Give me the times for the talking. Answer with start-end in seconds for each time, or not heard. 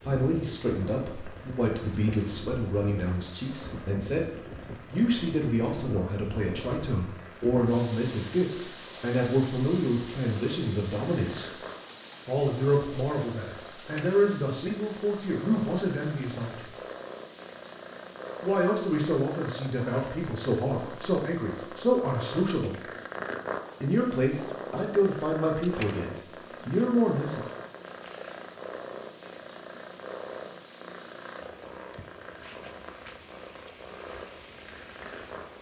0.0-4.3, 4.9-11.6, 12.2-16.6, 18.4-22.8, 23.8-27.4.